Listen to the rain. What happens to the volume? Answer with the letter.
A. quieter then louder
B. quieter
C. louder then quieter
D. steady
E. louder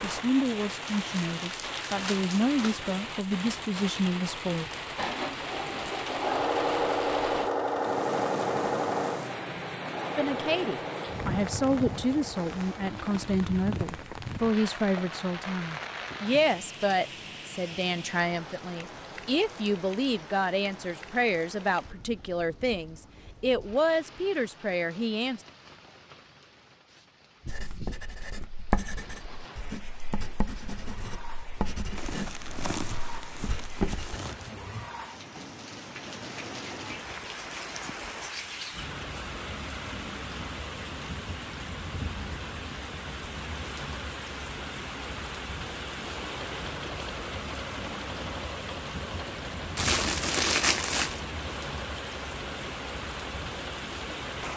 A.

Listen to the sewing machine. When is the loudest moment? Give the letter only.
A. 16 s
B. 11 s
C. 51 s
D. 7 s
D.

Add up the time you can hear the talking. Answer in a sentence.
The talking can be heard for 20 seconds in total.